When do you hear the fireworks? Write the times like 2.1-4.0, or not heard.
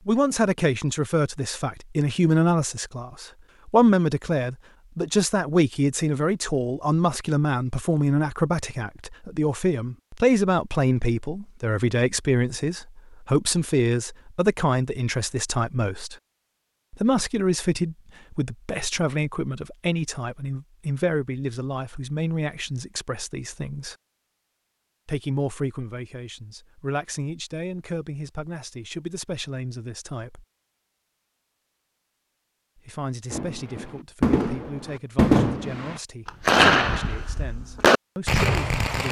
33.3-39.0.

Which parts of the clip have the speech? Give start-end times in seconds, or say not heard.
0.1-16.1, 16.9-23.9, 25.1-30.4, 32.8-39.0.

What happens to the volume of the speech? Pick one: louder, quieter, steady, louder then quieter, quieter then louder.
quieter.